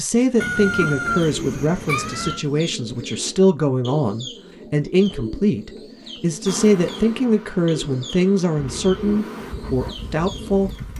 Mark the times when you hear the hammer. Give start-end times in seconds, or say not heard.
not heard.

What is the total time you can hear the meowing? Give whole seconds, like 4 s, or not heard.
3 s.